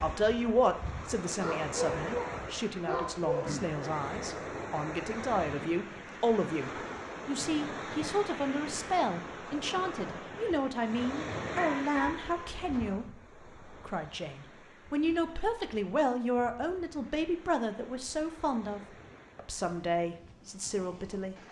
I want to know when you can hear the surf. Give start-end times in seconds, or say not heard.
0.0-21.4.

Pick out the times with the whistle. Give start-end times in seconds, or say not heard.
not heard.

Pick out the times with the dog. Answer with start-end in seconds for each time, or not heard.
1.4-3.5, 11.6-12.8.